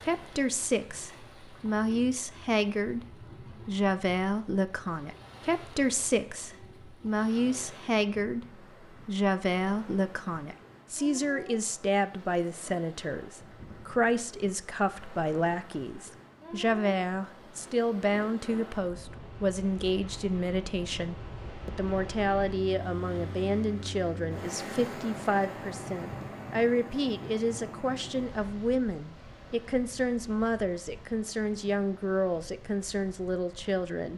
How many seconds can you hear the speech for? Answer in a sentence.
You can hear the speech for 33 seconds altogether.